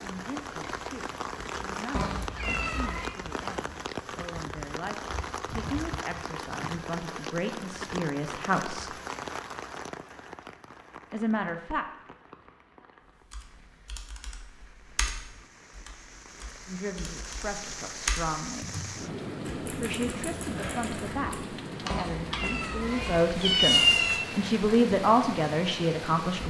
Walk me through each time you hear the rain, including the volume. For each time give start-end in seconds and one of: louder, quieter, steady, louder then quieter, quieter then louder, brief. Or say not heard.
0.0-26.4 quieter then louder.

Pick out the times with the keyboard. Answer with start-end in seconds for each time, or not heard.
13.3-22.6.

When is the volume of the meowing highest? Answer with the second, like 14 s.
24 s.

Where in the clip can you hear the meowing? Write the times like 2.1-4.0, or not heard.
1.9-3.1, 21.9-24.2.